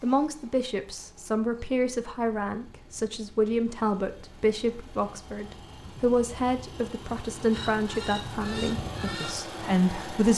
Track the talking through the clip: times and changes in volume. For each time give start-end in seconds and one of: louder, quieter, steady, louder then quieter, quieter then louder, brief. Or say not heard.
0.0-10.3 steady.